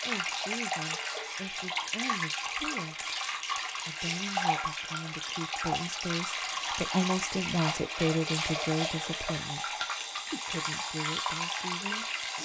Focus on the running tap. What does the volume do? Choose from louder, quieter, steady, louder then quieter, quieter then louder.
steady.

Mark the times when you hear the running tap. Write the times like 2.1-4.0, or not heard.
0.0-12.3.